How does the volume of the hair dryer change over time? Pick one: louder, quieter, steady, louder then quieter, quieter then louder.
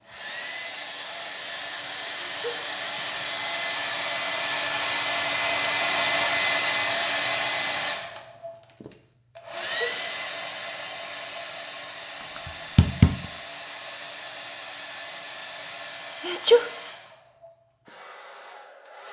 louder then quieter.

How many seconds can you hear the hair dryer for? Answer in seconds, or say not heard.
19 s.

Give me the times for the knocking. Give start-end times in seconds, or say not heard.
12.2-13.2.